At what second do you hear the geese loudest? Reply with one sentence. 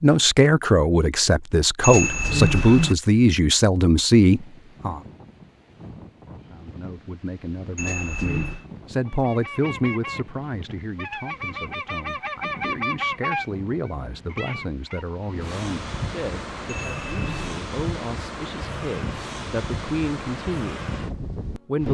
The loudest moment of the geese is at 13 seconds.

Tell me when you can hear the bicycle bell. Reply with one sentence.
You can hear the bicycle bell from 1.8 to 3.0 s, from 7.8 to 8.7 s and from 16.6 to 17.6 s.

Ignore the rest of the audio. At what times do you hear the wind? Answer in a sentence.
You can hear the wind from 4.2 to 21.9 s.